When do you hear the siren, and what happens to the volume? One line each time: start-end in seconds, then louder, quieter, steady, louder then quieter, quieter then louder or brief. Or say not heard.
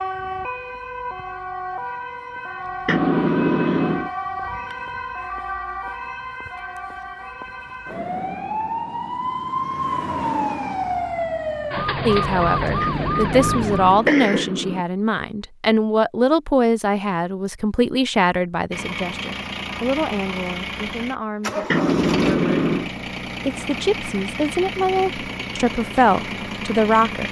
0.0-14.1 louder.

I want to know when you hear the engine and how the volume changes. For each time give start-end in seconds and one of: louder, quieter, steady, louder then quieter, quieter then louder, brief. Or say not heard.
18.7-27.2 steady.